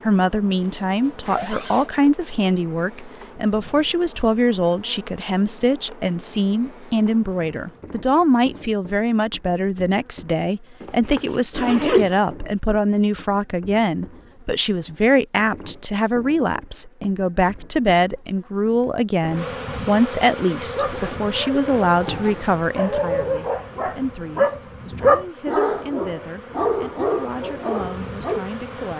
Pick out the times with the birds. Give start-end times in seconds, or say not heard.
not heard.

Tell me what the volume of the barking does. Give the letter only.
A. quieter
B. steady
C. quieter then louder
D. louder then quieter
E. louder
D.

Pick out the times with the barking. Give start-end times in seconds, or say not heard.
20.6-28.4.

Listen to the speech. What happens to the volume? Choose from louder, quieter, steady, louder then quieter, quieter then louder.
quieter.